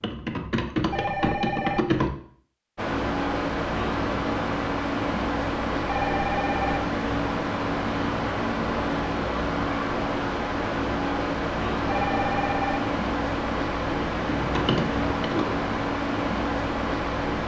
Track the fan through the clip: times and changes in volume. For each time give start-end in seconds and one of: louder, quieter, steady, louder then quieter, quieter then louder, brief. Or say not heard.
2.8-17.4 steady.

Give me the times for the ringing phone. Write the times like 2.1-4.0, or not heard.
0.9-1.9, 5.8-6.8, 11.8-12.8.